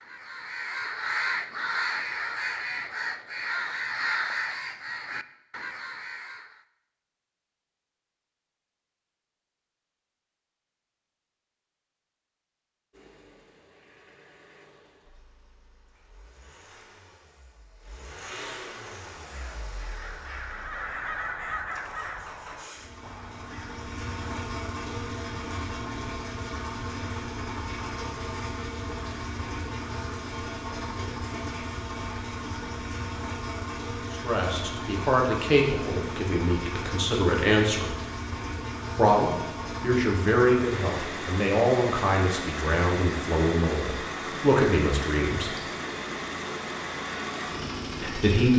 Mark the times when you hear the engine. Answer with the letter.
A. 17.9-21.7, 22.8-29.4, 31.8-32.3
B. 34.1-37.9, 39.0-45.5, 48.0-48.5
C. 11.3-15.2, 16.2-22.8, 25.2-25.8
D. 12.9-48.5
D.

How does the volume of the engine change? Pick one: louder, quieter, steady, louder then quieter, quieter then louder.
louder.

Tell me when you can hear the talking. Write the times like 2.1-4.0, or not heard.
34.1-37.9, 39.0-45.5, 48.0-48.5.